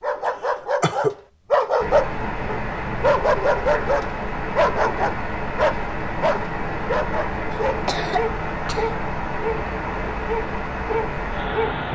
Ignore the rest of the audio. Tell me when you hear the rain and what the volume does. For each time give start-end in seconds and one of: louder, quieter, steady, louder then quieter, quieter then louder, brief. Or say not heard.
1.8-11.8 steady.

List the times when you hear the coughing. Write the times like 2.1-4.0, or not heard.
0.2-1.1, 7.5-8.9.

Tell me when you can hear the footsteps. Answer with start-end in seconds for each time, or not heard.
not heard.